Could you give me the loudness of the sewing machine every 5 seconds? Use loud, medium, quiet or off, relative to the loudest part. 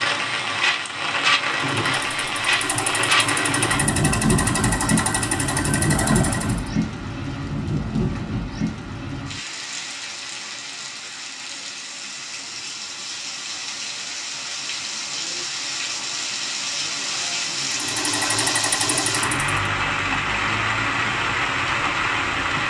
loud, loud, off, loud, off.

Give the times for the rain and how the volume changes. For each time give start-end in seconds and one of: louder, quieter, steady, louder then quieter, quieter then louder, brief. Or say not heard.
0.0-22.6 quieter then louder.